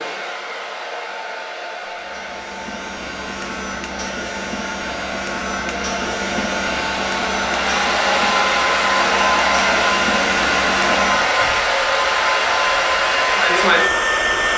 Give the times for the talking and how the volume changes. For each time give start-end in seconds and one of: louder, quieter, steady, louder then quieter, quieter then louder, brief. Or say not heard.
not heard.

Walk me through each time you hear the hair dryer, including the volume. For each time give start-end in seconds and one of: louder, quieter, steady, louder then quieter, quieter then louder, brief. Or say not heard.
0.0-14.5 louder.